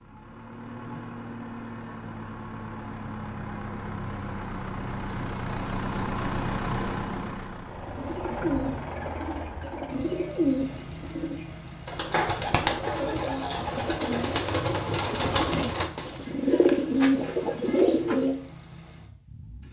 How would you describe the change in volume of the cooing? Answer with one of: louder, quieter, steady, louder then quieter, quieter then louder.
louder.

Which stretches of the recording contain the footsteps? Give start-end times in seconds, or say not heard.
not heard.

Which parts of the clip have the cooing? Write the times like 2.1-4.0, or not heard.
7.8-18.4.